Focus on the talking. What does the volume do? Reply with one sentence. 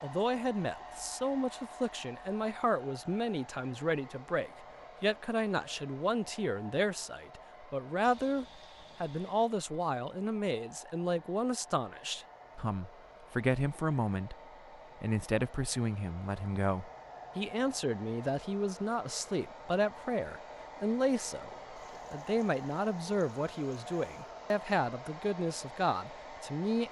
The loudness of the talking stays about the same.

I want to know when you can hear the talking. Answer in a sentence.
You can hear the talking from 0.0 to 14.3 s and from 15.0 to 26.8 s.